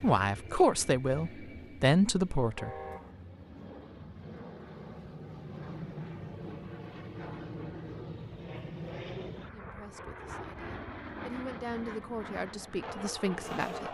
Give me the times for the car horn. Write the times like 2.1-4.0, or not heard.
2.5-3.1.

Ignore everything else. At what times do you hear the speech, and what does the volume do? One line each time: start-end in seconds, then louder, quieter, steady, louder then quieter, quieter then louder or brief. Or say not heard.
0.0-2.7 brief
9.5-13.8 louder.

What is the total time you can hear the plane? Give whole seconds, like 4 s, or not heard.
14 s.